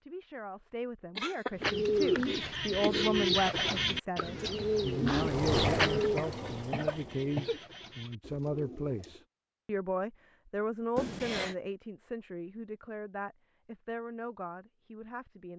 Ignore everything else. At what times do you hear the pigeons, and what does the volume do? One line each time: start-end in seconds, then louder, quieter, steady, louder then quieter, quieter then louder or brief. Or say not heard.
1.6-9.2 quieter.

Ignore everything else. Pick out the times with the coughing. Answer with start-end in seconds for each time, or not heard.
1.1-3.1, 5.6-7.6, 10.9-11.6.